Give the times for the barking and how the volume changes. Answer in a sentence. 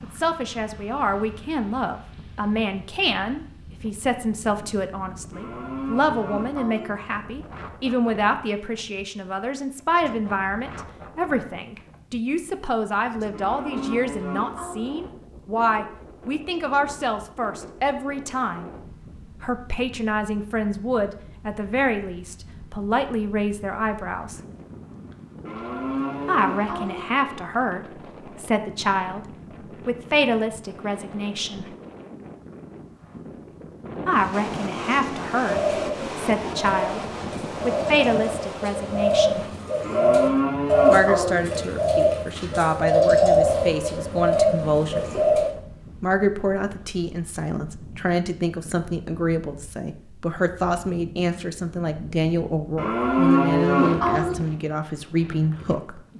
The barking can't be heard in this clip.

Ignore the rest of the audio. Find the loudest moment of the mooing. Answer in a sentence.
The loudest moment of the mooing is at 53 seconds.